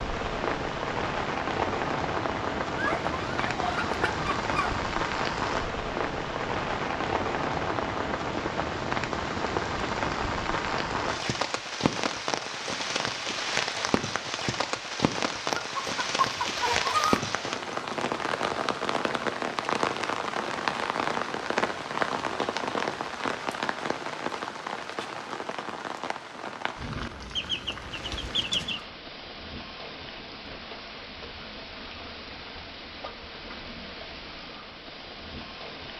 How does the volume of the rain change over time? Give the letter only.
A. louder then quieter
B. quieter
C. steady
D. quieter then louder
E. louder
B.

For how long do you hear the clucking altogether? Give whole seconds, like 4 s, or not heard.
5 s.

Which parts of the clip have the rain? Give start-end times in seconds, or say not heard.
0.0-35.9.